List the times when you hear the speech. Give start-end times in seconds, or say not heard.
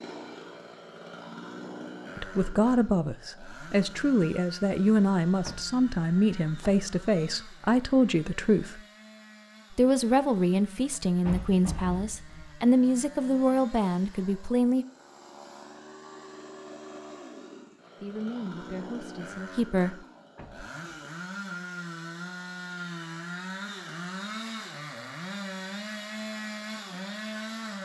2.1-8.8, 9.8-14.8, 18.0-19.9.